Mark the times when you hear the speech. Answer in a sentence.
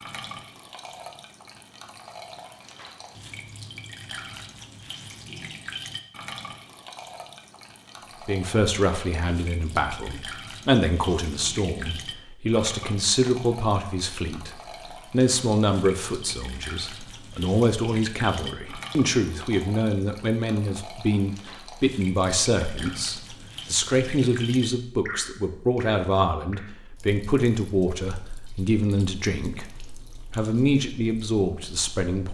You can hear the speech from 8.2 to 29.7 s and from 30.3 to 32.2 s.